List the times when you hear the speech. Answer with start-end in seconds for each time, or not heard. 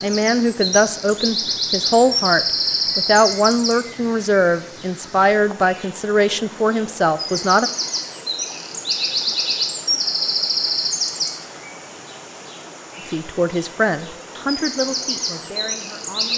0.0-7.7, 13.1-16.3.